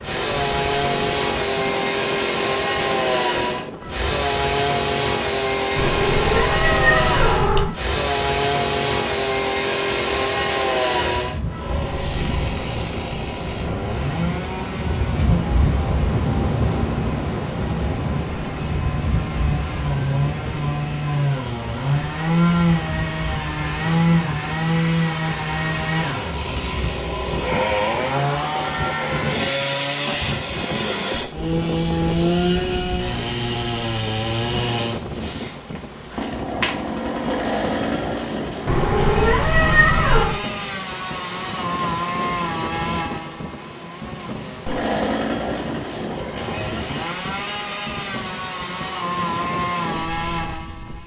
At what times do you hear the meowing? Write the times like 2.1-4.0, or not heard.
5.8-7.7, 38.6-40.4.